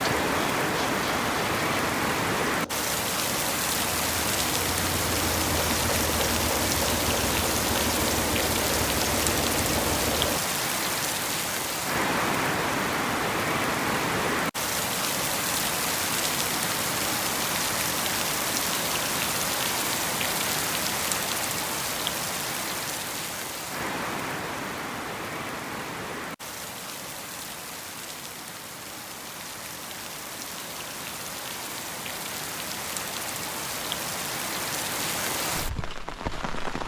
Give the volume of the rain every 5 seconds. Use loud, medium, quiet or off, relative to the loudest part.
loud, loud, loud, loud, loud, medium, medium, medium.